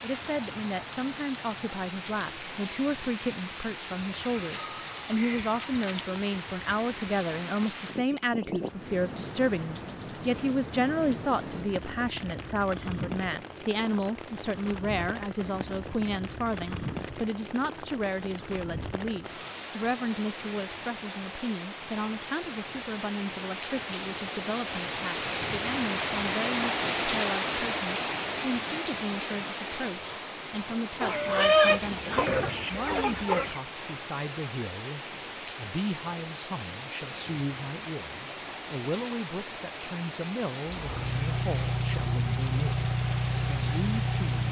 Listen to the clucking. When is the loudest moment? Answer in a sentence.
The volume of the clucking peaks at 32 seconds.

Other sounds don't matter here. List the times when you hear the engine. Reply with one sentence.
The engine can be heard from 40.6 to 44.4 s.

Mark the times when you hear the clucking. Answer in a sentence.
The clucking can be heard from 4.2 to 5.8 s and from 31.0 to 33.6 s.